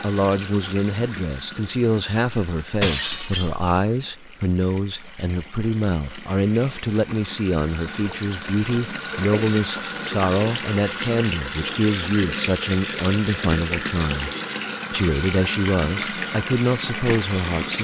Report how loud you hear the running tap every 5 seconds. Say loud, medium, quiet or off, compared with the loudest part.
medium, medium, loud, loud.